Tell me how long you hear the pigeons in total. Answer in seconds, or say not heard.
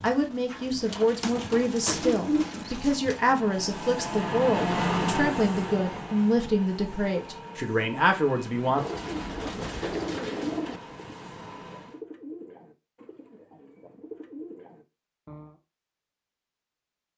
10 s.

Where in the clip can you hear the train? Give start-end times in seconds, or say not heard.
1.6-12.0.